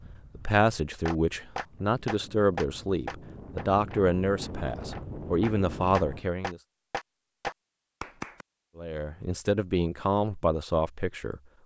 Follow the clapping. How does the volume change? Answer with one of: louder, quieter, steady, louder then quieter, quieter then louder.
quieter then louder.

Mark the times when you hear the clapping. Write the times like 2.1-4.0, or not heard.
1.1-8.4.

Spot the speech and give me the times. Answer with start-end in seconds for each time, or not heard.
0.3-6.6, 8.8-11.4.